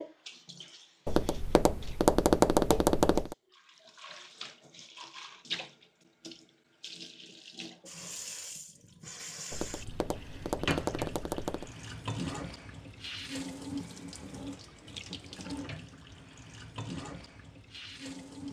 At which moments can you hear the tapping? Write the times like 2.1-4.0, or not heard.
1.1-3.4, 9.5-11.7.